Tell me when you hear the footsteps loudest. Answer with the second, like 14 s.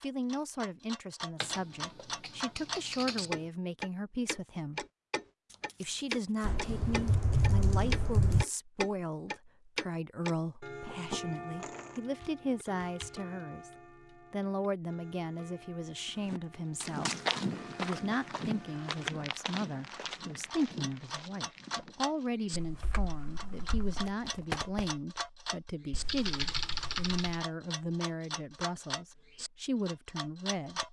17 s.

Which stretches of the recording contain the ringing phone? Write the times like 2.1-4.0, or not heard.
not heard.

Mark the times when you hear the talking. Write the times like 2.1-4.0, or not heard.
0.0-4.8, 5.8-13.7, 14.3-17.2, 17.8-30.8.